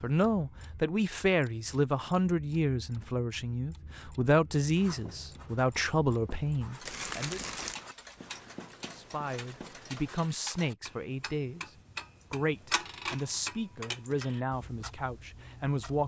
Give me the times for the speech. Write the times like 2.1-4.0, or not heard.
0.0-7.4, 8.9-11.7, 12.3-16.0.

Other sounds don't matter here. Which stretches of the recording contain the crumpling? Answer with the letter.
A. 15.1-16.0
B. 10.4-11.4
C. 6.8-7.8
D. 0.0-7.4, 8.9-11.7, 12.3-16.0
C.